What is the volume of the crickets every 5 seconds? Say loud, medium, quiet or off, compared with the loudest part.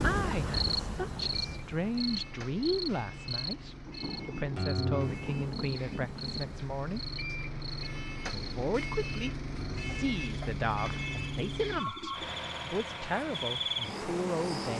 loud, medium, loud.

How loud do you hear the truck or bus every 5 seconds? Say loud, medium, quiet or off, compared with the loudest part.
medium, loud, loud.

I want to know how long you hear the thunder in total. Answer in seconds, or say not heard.
3 s.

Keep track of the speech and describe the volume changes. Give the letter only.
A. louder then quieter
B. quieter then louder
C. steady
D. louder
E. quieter
C.